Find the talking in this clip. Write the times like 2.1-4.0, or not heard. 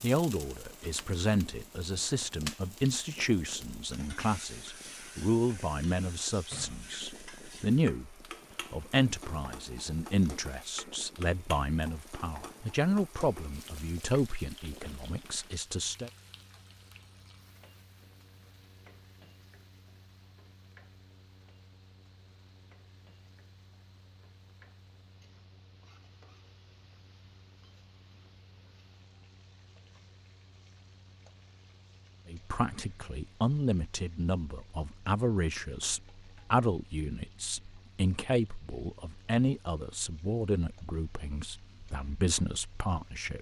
0.0-16.1, 32.2-43.3.